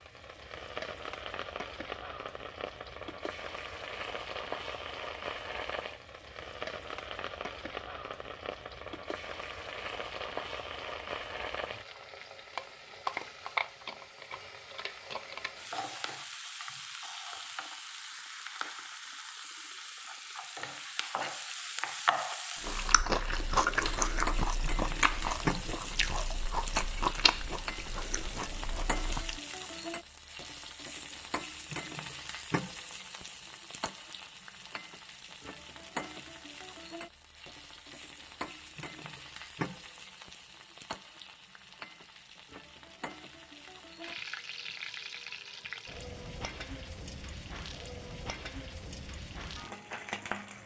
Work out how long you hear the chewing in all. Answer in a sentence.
You can hear the chewing for 7 seconds altogether.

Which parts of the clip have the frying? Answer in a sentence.
You can hear the frying from 0.0 to 50.6 s.